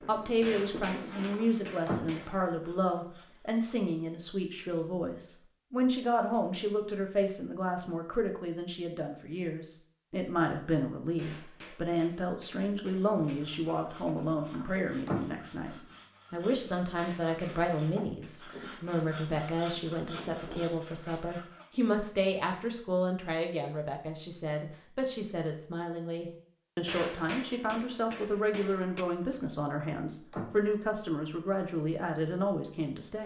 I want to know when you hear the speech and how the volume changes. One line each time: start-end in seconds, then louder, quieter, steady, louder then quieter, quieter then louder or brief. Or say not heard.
0.1-33.2 steady.